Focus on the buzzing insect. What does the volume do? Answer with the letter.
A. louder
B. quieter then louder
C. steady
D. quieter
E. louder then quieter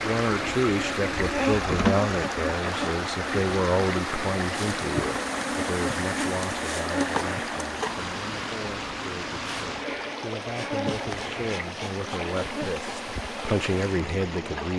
D.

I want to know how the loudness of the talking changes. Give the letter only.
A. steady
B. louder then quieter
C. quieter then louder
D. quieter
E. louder
C.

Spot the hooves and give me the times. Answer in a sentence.
You can't hear the hooves here.